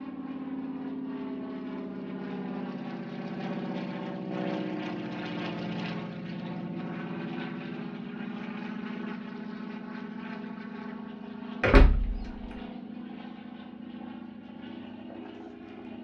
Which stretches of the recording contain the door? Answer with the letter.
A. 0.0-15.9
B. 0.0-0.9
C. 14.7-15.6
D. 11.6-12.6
D.